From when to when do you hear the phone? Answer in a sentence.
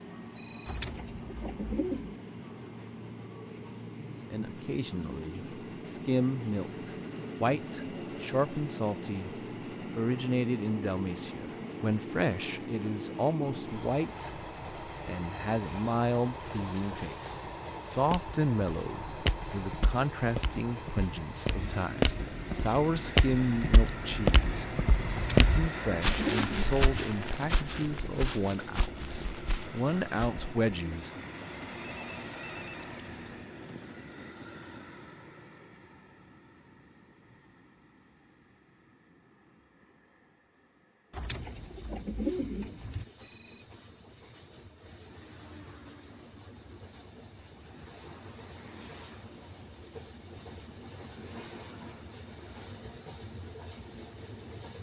You can hear the phone from 0.3 to 0.8 s, from 31.6 to 33.2 s and from 43.1 to 43.7 s.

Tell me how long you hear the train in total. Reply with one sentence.
You can hear the train for 55 seconds altogether.